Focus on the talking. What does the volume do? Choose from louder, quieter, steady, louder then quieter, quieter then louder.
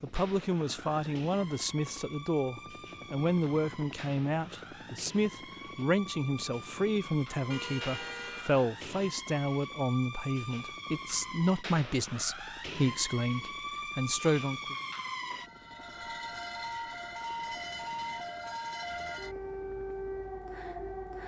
steady.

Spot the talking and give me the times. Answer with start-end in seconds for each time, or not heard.
0.0-14.8.